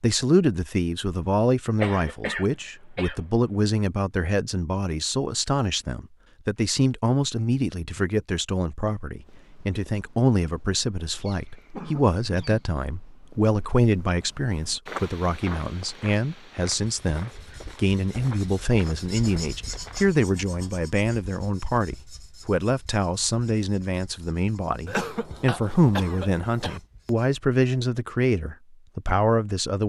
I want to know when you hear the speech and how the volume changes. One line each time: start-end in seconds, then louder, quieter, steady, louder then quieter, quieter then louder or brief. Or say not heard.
0.0-29.8 steady.